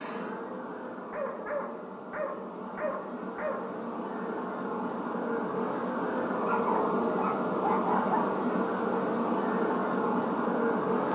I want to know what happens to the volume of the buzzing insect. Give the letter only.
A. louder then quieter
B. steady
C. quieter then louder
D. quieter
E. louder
E.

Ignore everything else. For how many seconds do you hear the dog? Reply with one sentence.
The dog can be heard for 5 seconds in total.